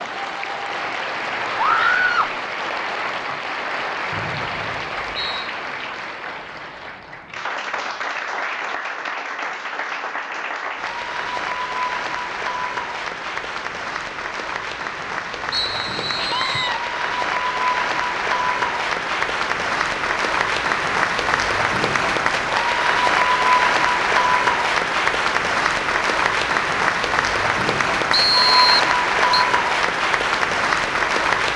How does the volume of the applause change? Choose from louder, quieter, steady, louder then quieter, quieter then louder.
louder.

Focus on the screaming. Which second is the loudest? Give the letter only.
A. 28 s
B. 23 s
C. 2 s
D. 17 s
C.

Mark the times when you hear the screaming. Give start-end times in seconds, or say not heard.
1.6-2.4, 16.1-16.8.